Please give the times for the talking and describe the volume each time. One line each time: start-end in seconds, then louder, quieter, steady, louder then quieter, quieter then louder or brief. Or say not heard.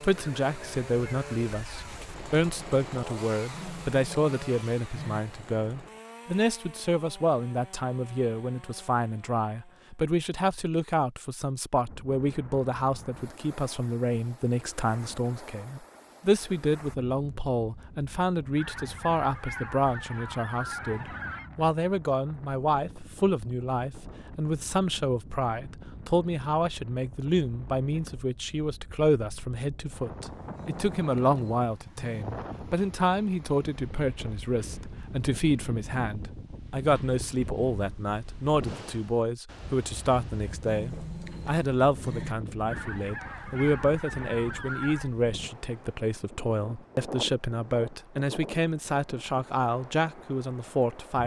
0.0-51.2 steady.